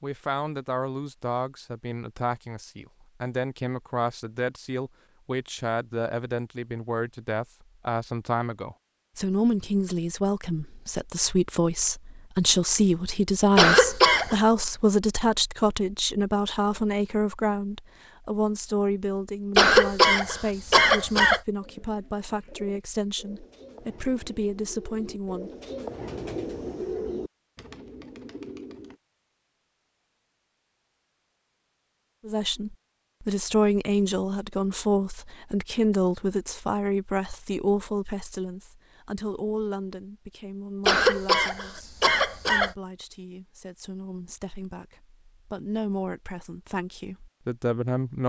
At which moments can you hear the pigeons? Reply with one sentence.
The pigeons can be heard from 21.6 to 29.0 s.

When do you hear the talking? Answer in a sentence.
The talking can be heard from 0.0 to 25.5 s and from 32.2 to 48.2 s.